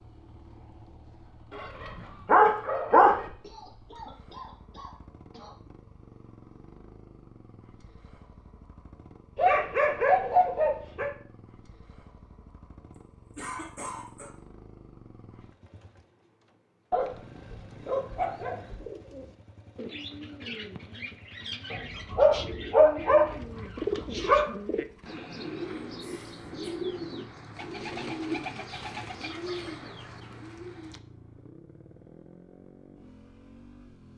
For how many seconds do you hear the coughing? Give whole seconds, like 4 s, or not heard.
4 s.